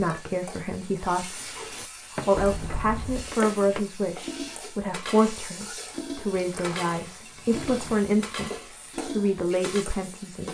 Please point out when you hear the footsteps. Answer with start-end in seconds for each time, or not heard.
not heard.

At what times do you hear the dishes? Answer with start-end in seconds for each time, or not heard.
1.4-9.8.